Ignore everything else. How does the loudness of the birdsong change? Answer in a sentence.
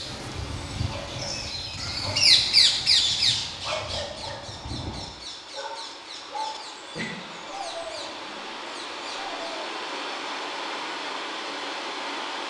The volume of the birdsong goes up, then down.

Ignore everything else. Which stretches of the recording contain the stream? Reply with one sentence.
The stream can be heard from 0.0 to 12.4 s.